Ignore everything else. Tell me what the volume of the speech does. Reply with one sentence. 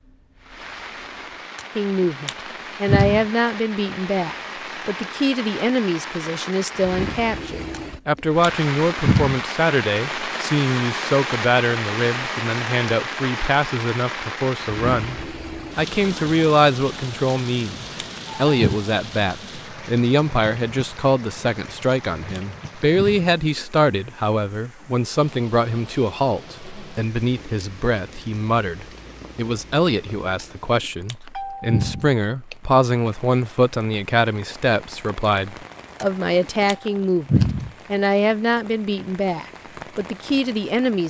The loudness of the speech stays about the same.